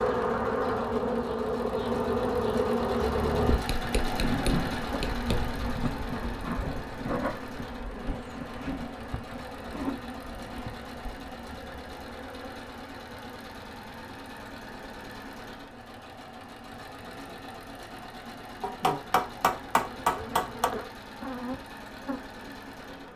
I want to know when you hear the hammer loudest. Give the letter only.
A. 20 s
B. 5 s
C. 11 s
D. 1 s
A.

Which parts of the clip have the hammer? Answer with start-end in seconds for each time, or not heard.
3.6-5.5, 18.6-20.7.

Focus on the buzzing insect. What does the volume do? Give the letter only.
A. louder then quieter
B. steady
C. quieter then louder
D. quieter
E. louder
C.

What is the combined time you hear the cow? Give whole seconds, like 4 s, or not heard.
not heard.